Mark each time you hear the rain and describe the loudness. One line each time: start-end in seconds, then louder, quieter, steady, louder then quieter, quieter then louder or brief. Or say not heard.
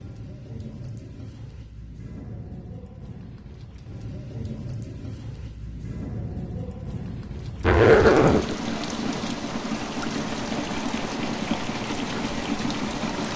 0.0-13.3 louder.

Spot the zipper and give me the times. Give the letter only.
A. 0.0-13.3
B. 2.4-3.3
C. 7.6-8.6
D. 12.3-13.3
C.